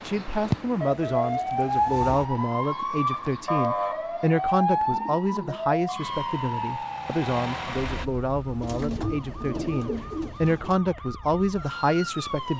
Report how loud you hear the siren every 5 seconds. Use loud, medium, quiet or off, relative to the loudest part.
loud, medium, medium.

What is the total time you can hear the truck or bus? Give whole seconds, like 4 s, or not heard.
2 s.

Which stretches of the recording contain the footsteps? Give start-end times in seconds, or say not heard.
not heard.